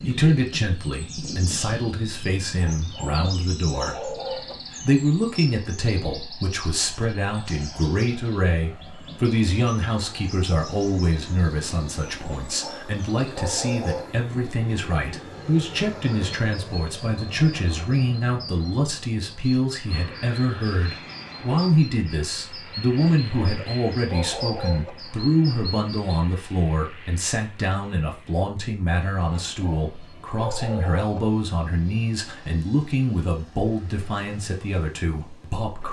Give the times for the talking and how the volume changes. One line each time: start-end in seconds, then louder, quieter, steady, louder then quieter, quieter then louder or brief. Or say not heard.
0.0-35.8 steady.